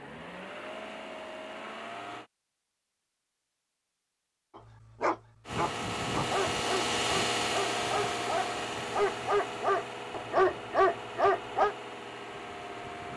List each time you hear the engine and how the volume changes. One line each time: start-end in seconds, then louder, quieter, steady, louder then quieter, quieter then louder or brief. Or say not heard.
0.0-2.3 brief
5.5-13.1 quieter.